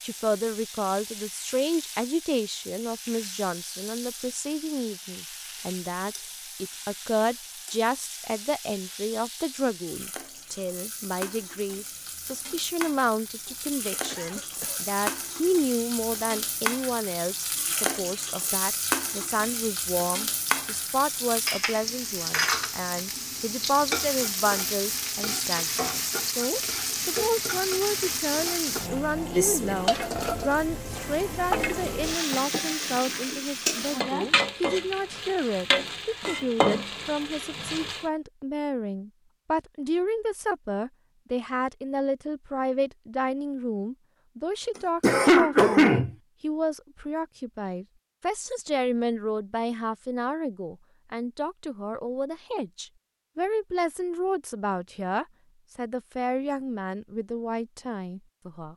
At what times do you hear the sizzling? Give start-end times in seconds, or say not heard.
0.0-38.1.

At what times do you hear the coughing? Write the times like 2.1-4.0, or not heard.
13.4-14.9, 45.0-46.1.